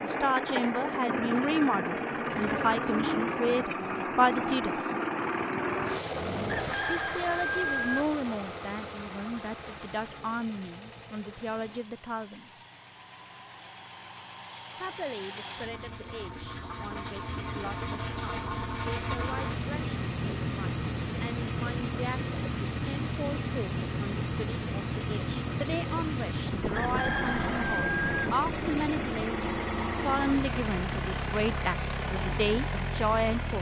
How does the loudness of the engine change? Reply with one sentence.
The volume of the engine goes down, then up.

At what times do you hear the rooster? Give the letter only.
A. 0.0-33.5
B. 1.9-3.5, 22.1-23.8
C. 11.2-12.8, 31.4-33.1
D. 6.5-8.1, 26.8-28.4
D.